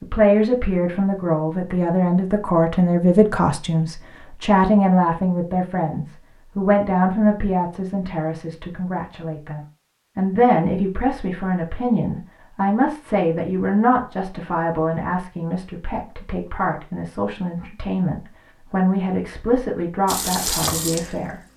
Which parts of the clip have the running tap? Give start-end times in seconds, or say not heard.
20.1-21.5.